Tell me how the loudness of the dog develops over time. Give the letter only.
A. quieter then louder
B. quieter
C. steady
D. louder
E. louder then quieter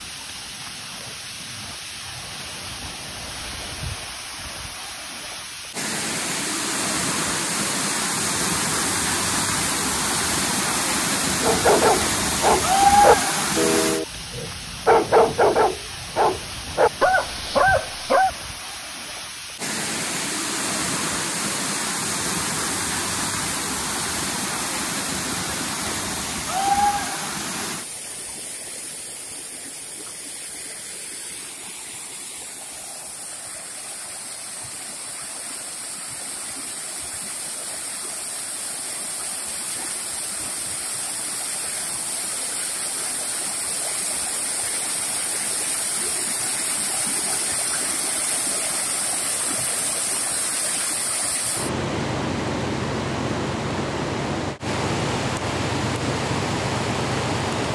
C.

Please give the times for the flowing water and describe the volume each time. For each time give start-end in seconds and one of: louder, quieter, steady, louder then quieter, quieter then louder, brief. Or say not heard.
0.0-57.7 quieter then louder.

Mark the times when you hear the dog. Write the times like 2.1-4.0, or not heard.
11.4-18.3.